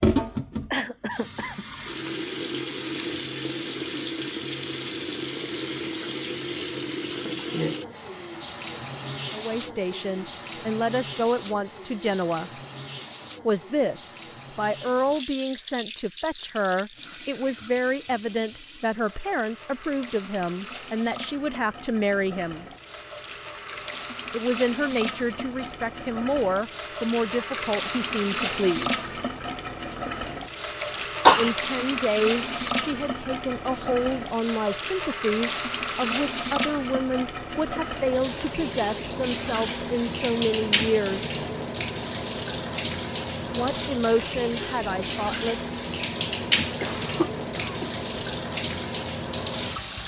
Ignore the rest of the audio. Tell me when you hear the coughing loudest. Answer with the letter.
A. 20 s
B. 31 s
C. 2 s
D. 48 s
B.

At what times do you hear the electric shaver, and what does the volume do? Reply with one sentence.
The electric shaver can't be heard in this clip.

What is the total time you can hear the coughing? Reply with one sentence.
You can hear the coughing for 3 seconds altogether.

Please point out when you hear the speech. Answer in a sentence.
The speech can be heard from 9.3 to 12.5 s, from 13.4 to 22.6 s, from 24.3 to 29.1 s, from 31.4 to 41.4 s and from 43.5 to 45.7 s.